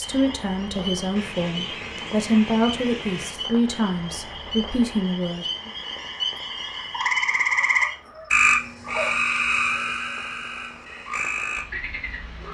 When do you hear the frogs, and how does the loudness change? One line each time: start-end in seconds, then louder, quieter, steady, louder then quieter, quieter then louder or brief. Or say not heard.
0.0-12.5 louder then quieter.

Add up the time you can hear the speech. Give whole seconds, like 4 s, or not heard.
6 s.